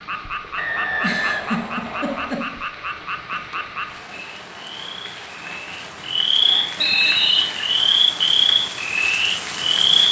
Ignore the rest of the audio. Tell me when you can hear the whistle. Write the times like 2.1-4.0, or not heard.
0.6-2.3, 6.8-7.5.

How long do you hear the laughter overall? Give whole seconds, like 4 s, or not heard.
3 s.